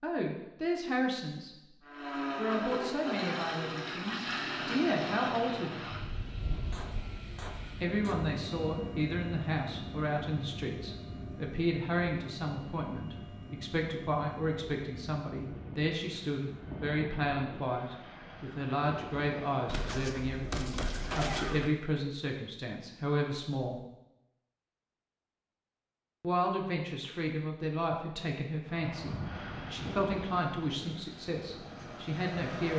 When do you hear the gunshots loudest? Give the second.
21 s.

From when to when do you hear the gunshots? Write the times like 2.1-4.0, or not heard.
6.7-8.3, 19.6-21.7.